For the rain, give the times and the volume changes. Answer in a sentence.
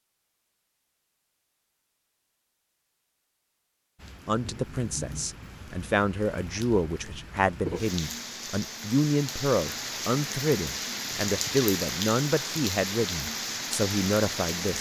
The rain can be heard from 4.0 to 14.7 s, getting louder.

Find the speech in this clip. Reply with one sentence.
You can hear the speech from 4.2 to 14.7 s.